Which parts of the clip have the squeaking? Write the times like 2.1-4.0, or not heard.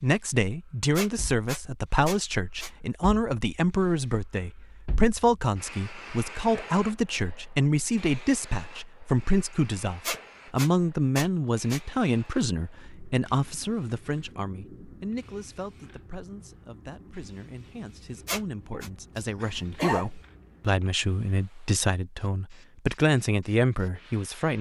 0.9-2.7, 10.0-11.8, 18.2-18.9.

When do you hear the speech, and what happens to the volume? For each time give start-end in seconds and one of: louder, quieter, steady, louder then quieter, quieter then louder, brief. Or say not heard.
0.0-24.5 quieter then louder.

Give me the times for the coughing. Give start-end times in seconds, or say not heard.
18.7-20.1.